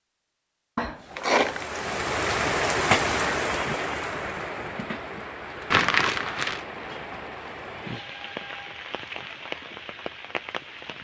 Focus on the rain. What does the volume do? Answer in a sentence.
The volume of the rain goes down.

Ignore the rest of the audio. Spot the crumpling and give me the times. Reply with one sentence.
The crumpling can be heard from 0.8 to 1.6 s and from 5.7 to 6.6 s.